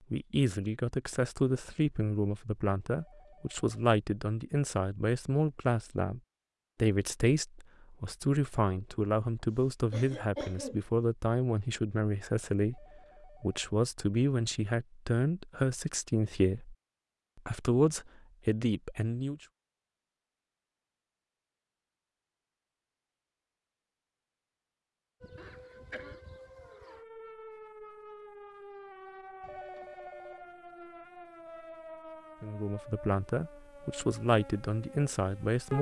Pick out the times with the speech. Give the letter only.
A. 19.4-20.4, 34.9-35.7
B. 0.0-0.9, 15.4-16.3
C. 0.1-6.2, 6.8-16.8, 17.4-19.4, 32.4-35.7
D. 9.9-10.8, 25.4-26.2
C.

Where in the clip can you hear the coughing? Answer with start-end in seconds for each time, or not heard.
9.9-10.8, 25.4-26.2.